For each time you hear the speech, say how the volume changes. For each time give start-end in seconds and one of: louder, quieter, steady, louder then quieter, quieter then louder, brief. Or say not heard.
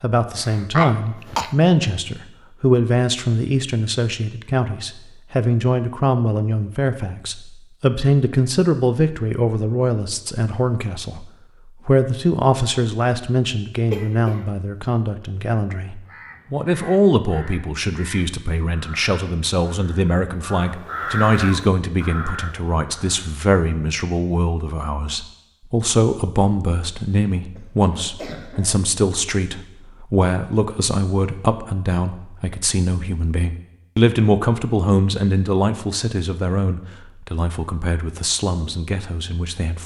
0.0-39.8 steady.